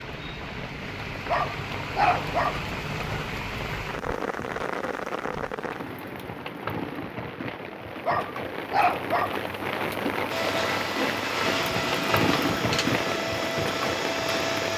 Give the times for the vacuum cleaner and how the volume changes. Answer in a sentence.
The vacuum cleaner can be heard from 10.3 to 14.7 s, at a steady volume.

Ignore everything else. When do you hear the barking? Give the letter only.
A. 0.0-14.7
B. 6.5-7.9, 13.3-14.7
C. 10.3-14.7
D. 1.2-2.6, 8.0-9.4
D.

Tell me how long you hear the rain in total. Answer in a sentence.
You can hear the rain for 15 seconds altogether.